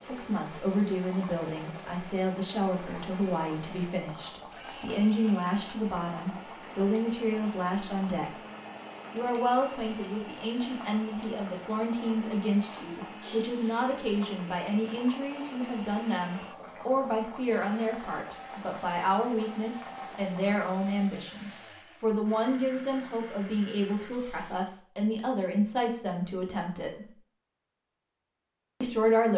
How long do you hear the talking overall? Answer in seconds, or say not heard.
27 s.